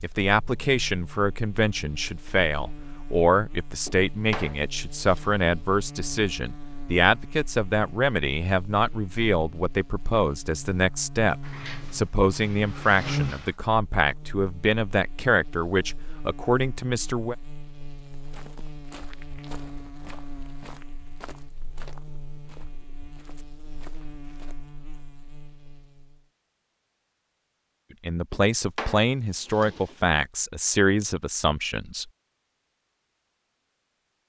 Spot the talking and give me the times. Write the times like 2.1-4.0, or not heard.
0.0-17.4, 28.0-32.1.